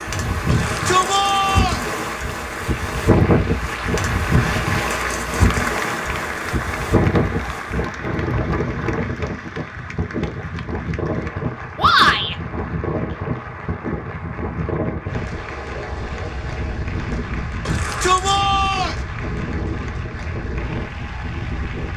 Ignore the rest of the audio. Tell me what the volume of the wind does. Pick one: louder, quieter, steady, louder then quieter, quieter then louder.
quieter.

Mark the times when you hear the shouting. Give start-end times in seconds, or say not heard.
0.5-1.9, 11.8-12.3, 17.6-18.9.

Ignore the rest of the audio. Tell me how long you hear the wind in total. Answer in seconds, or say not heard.
22 s.